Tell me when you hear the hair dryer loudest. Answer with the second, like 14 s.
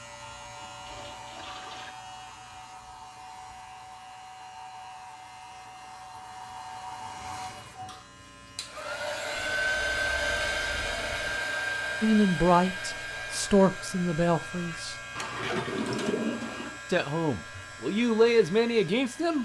10 s.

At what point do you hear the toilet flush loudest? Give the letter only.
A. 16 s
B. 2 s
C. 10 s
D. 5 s
A.